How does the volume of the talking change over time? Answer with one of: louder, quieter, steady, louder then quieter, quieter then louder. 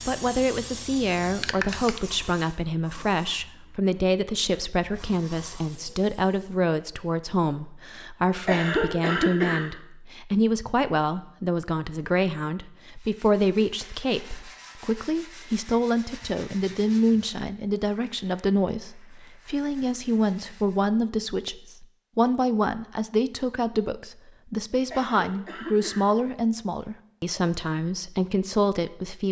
steady.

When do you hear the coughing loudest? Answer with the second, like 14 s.
9 s.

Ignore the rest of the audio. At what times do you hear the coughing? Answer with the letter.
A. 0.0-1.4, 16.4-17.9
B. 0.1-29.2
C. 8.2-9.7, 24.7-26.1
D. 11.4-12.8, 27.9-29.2
C.